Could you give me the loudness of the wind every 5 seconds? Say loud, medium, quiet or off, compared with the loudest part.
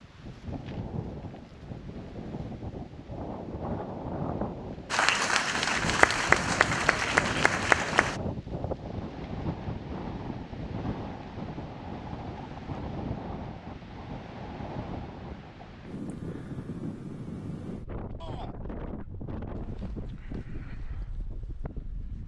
loud, loud, loud, loud, medium.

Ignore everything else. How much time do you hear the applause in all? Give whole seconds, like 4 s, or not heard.
3 s.